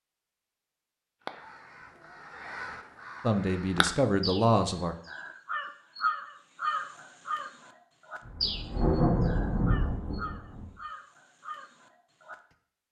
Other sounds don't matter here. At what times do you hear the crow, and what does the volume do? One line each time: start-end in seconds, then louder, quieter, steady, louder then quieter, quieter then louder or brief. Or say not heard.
1.2-12.3 louder then quieter.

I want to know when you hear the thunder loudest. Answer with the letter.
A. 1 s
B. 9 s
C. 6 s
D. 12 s
B.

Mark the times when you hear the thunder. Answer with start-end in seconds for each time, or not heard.
8.2-10.7.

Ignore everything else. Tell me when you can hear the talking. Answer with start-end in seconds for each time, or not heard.
3.2-5.0.